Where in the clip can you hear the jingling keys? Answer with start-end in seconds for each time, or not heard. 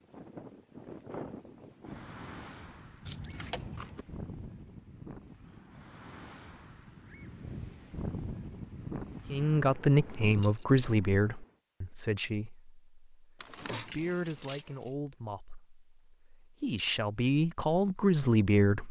3.0-4.0, 10.3-10.8, 13.4-14.9.